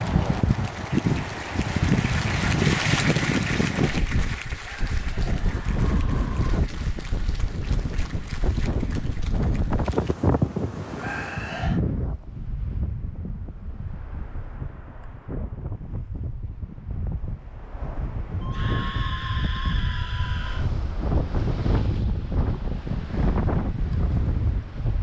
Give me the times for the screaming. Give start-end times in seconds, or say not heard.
4.6-6.6, 10.9-11.8, 18.4-20.7.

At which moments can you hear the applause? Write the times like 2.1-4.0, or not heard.
0.0-10.2.